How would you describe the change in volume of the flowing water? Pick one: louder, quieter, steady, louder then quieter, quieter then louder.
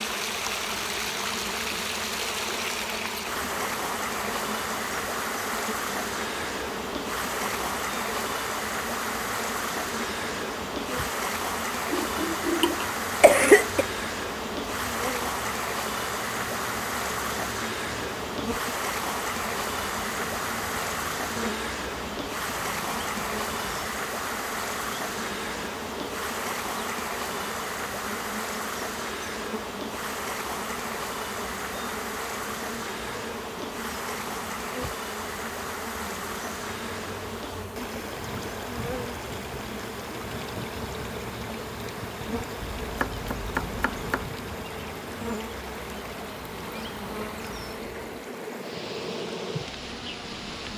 quieter.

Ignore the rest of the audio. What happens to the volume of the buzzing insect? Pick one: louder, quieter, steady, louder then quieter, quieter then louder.
steady.